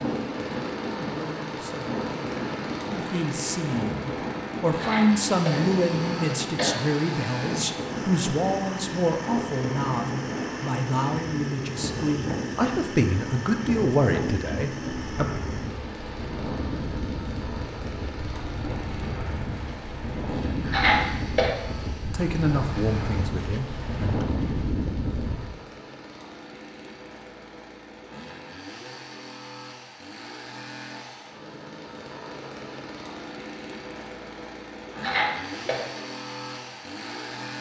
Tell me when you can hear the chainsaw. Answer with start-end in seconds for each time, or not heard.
0.0-37.5.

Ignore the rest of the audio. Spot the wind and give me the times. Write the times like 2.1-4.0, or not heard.
0.0-25.5.